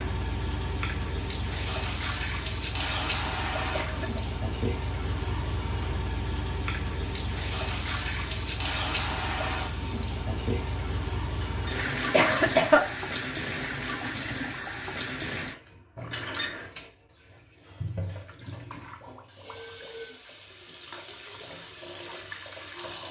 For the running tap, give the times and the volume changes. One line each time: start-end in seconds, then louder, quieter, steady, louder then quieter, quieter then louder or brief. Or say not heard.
0.0-23.0 quieter.